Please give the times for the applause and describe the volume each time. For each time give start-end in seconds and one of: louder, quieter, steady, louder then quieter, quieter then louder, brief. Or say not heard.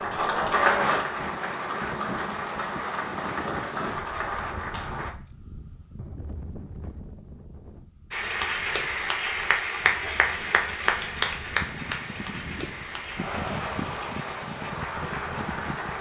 0.0-5.2 quieter
8.1-15.9 quieter.